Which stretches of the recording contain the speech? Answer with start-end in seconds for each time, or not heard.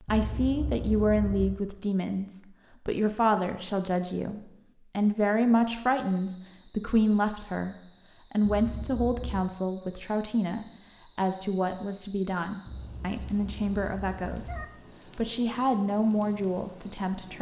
0.0-17.3.